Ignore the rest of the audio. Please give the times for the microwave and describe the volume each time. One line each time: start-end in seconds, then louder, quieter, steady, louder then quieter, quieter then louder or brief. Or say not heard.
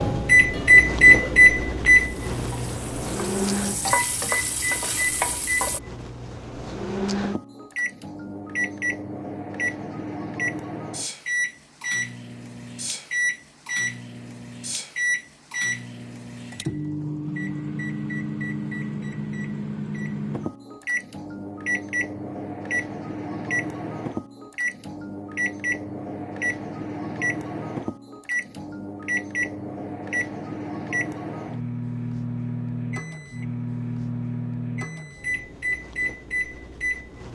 0.0-37.3 quieter.